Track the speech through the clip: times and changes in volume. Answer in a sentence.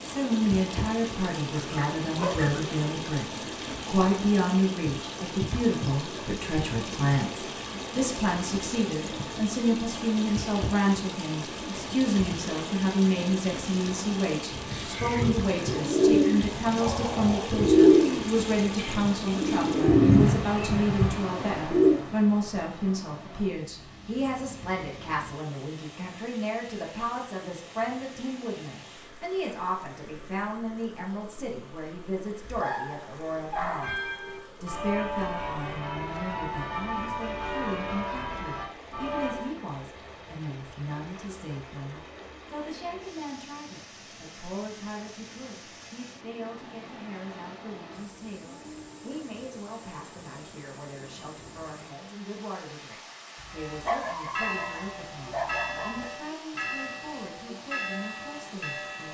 You can hear the speech from 0.0 to 59.0 s, getting quieter.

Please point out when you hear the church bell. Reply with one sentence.
The church bell can be heard from 33.6 to 39.5 s and from 53.5 to 59.0 s.